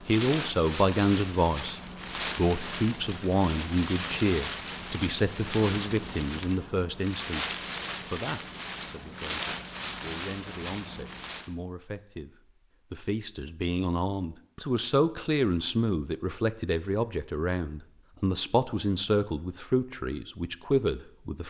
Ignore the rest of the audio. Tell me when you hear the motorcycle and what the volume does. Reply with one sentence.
You can't hear the motorcycle here.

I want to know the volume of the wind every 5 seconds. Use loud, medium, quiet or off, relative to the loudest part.
loud, loud, loud, off, off.